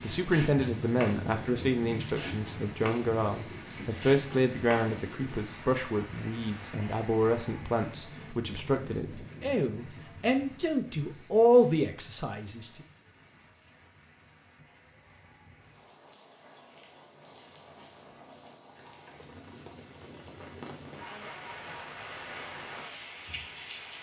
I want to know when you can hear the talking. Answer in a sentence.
The talking can be heard from 0.0 to 12.8 s.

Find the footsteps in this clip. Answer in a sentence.
The footsteps can't be heard in this clip.